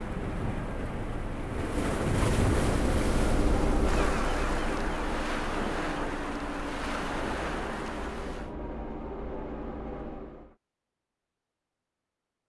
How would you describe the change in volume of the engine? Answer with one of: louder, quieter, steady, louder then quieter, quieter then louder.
louder then quieter.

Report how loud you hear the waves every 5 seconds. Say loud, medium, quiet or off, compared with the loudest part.
loud, loud, off.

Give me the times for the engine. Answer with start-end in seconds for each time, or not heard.
0.0-10.6.